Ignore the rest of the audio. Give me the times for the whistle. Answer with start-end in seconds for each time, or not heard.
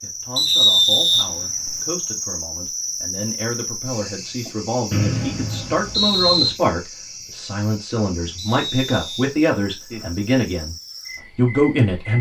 0.3-1.8, 4.9-6.5, 8.3-9.2.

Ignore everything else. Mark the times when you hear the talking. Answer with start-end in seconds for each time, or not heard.
0.0-10.8, 11.3-12.1.